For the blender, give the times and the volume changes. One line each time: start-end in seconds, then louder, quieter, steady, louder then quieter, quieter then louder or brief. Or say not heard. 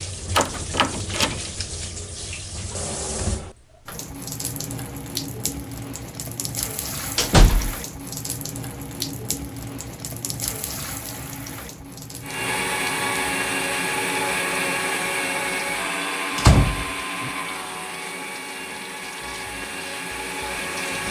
12.2-21.0 quieter.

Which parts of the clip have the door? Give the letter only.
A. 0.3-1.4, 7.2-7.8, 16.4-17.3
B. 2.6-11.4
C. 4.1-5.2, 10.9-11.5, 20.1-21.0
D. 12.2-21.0
A.